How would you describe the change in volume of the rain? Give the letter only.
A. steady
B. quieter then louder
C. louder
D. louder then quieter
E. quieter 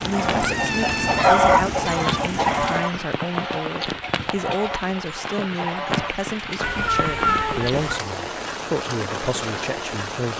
A.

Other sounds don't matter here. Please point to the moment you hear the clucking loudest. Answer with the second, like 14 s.
1 s.